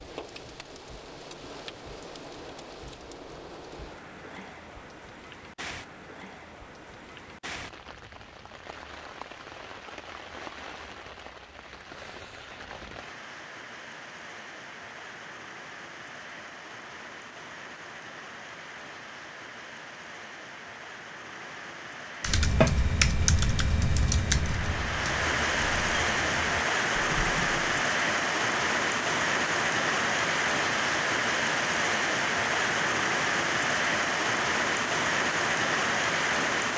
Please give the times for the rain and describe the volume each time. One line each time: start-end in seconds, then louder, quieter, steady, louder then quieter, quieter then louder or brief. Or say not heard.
0.0-36.7 louder.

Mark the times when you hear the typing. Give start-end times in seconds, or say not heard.
22.2-27.9.